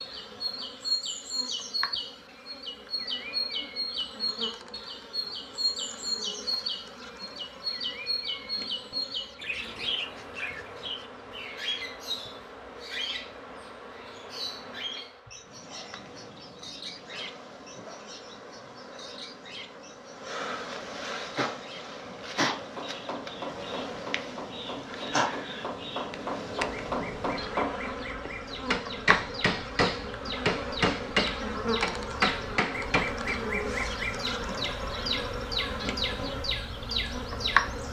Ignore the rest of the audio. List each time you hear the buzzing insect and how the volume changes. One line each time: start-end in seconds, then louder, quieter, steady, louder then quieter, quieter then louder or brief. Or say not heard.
0.0-37.8 louder.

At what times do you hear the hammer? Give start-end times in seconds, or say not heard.
22.8-33.4.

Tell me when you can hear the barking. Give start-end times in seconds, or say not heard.
not heard.